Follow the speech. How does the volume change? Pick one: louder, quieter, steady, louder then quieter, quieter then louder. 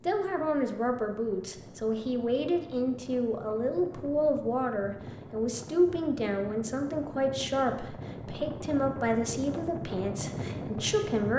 steady.